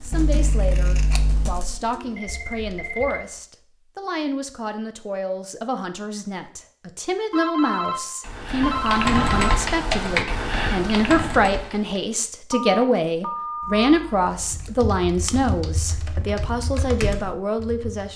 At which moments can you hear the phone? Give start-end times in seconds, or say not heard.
1.9-3.2, 7.3-9.6, 12.5-14.1.